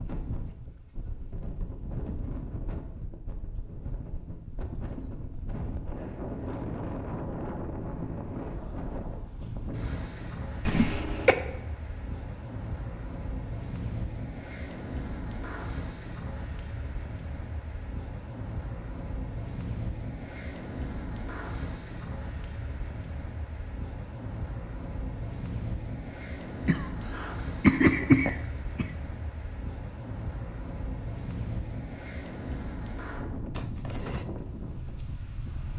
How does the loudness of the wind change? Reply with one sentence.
The loudness of the wind stays about the same.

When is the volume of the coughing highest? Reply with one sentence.
The loudest moment of the coughing is at 28 seconds.